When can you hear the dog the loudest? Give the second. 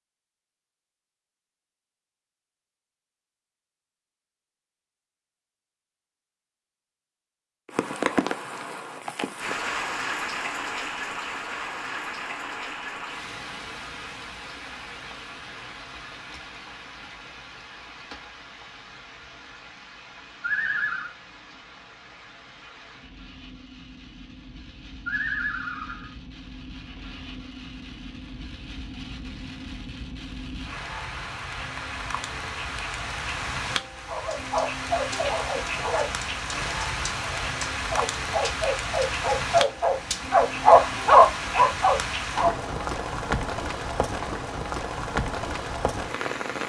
41 s.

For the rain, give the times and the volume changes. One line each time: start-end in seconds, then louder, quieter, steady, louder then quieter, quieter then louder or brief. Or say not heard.
7.7-46.6 quieter then louder.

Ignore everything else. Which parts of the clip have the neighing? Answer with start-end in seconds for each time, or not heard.
20.4-21.1, 25.1-26.1.